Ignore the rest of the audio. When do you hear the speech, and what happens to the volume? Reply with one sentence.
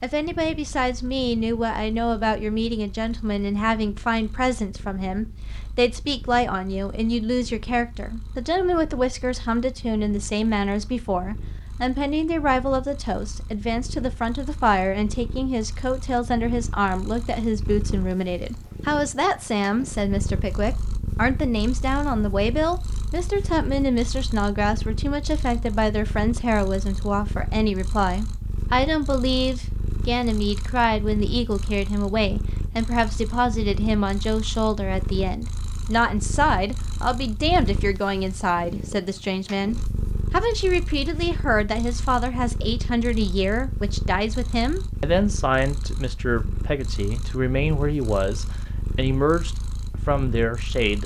The speech can be heard from 0.0 to 51.0 s, at a steady volume.